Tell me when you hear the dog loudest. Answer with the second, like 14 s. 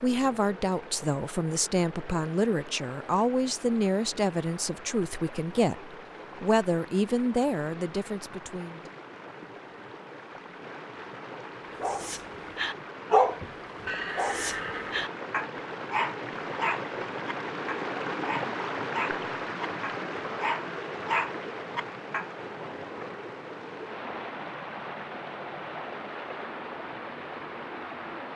13 s.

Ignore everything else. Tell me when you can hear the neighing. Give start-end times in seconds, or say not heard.
13.8-15.1.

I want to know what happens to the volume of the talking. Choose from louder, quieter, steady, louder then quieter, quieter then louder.
steady.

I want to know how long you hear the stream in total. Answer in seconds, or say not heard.
28 s.